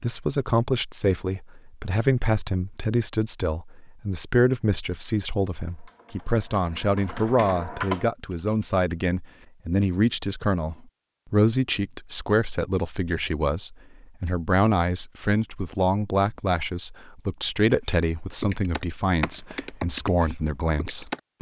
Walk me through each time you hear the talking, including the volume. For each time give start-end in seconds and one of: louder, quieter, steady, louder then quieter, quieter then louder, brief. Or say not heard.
0.0-21.3 steady.